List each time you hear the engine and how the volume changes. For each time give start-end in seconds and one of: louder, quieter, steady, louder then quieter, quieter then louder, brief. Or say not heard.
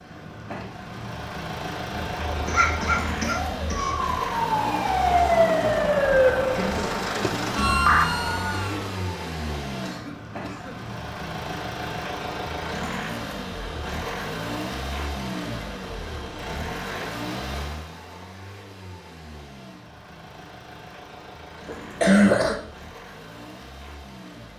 0.0-24.5 quieter.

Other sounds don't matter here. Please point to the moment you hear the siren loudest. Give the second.
6 s.